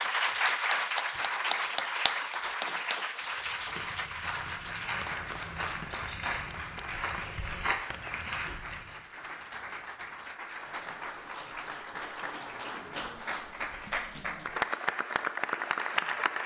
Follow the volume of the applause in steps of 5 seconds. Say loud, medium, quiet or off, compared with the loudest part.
loud, medium, medium, loud.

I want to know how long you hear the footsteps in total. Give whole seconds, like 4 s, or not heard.
6 s.